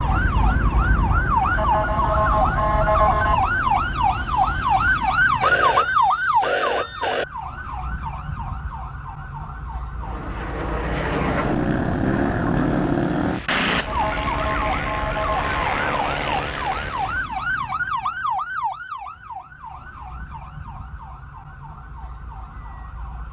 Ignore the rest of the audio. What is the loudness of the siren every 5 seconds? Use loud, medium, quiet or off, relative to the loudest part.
loud, loud, medium, medium, quiet.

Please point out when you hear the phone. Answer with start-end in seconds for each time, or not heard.
5.4-7.2.